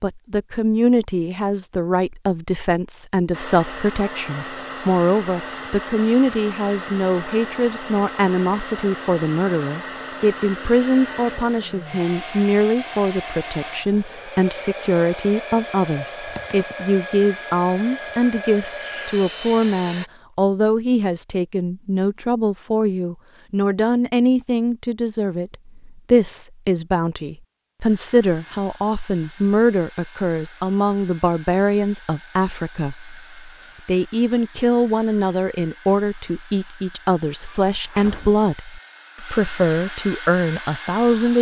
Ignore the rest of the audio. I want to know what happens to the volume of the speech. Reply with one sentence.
The volume of the speech stays about the same.